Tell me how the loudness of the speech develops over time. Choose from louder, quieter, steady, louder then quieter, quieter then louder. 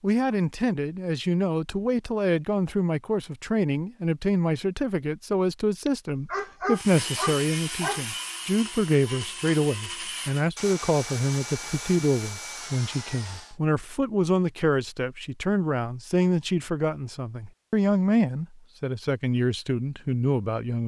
steady.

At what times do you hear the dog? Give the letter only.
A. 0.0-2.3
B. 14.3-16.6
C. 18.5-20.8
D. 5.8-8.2
D.